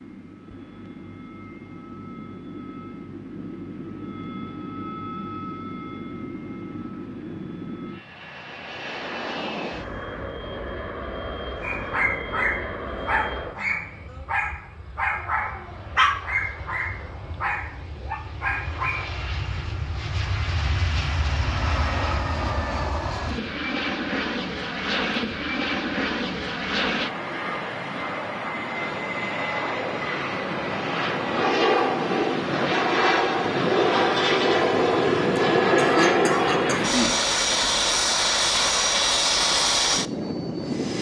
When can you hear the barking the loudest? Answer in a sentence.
The volume of the barking peaks at 16 seconds.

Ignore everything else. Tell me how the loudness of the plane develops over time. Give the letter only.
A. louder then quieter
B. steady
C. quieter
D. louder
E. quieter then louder
D.